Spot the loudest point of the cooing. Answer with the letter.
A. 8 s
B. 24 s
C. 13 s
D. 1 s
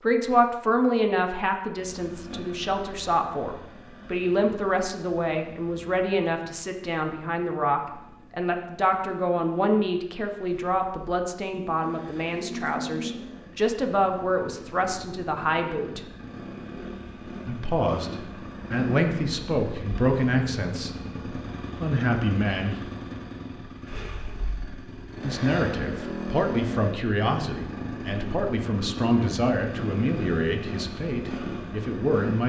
C.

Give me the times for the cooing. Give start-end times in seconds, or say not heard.
11.7-13.3.